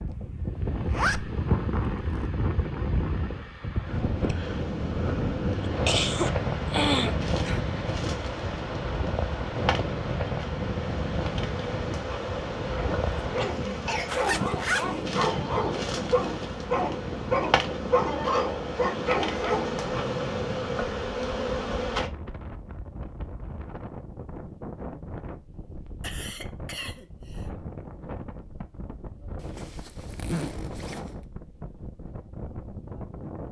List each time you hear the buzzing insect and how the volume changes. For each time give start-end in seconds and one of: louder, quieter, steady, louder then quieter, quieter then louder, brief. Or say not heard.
4.4-22.1 louder.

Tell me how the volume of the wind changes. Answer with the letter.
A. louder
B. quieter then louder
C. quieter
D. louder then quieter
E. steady
C.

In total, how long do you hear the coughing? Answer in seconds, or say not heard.
4 s.